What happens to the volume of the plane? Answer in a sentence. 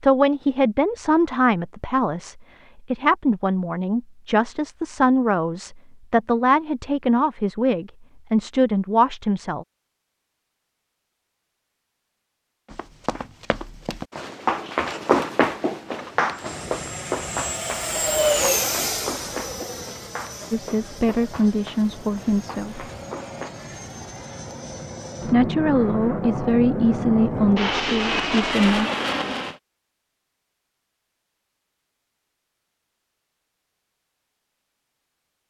The volume of the plane goes down, then up.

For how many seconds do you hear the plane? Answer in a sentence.
The plane can be heard for 13 seconds in total.